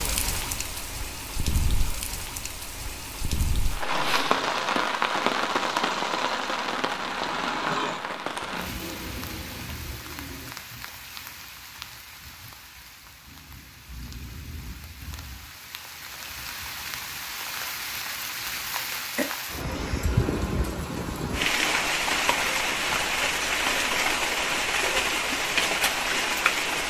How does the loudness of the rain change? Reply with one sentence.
The loudness of the rain goes down, then up.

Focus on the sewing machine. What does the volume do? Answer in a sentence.
The loudness of the sewing machine goes down.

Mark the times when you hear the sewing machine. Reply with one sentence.
The sewing machine can be heard from 3.9 to 10.6 s.